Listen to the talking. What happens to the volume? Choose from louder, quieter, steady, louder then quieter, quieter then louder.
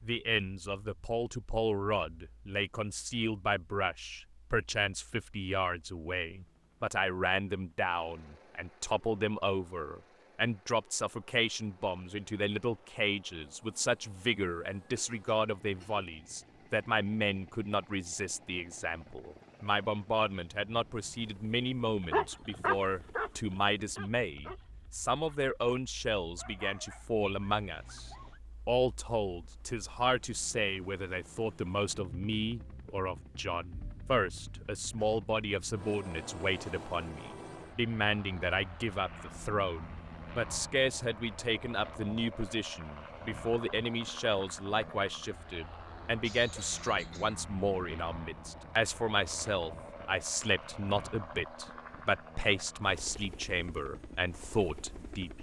steady.